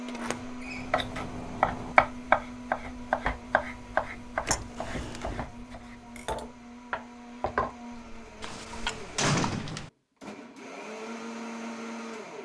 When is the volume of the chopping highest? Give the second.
2 s.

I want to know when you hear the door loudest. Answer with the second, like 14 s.
9 s.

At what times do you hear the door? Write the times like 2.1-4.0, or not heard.
0.1-1.9, 4.5-5.5, 8.4-9.9.